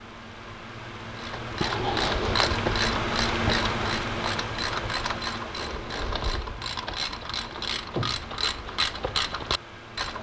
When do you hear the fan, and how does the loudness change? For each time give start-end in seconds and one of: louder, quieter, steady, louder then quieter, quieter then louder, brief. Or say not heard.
0.0-10.1 louder then quieter.